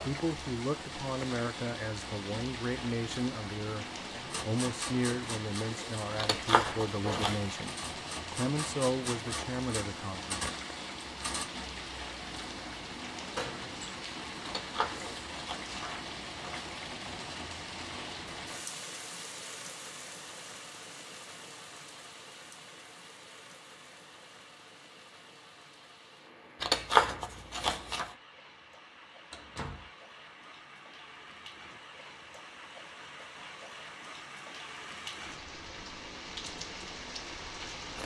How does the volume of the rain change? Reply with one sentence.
The volume of the rain goes down, then up.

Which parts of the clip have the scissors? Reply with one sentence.
The scissors can be heard from 6.2 to 7.5 s, from 14.4 to 16.6 s and from 26.6 to 28.1 s.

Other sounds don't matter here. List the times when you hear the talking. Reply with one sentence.
The talking can be heard from 0.0 to 10.4 s.